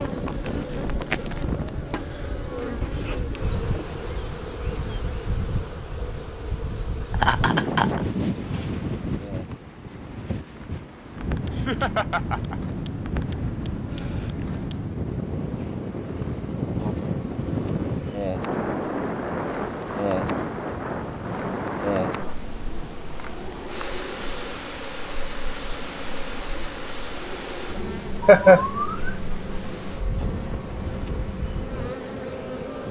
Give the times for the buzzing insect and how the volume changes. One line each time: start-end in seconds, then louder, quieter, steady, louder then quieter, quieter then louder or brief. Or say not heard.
0.0-32.8 quieter then louder.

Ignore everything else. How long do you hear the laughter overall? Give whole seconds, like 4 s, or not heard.
3 s.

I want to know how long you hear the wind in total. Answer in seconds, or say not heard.
33 s.